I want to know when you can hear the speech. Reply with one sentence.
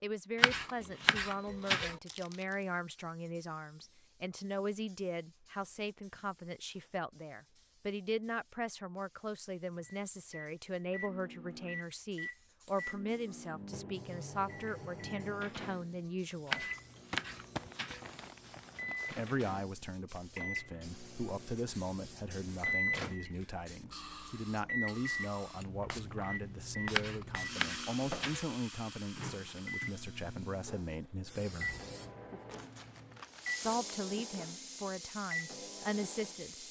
You can hear the speech from 0.0 to 16.6 s, from 19.1 to 31.8 s and from 33.6 to 36.6 s.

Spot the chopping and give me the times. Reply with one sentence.
You can hear the chopping from 0.4 to 1.9 s, from 16.5 to 18.1 s and from 26.9 to 28.5 s.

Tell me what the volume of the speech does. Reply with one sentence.
The loudness of the speech stays about the same.